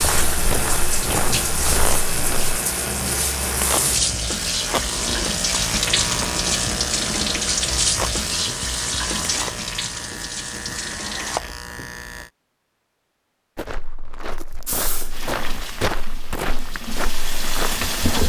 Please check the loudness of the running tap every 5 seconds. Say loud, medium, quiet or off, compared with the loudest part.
loud, loud, medium, medium.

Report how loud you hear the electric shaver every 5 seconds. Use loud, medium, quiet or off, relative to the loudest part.
loud, loud, loud, off.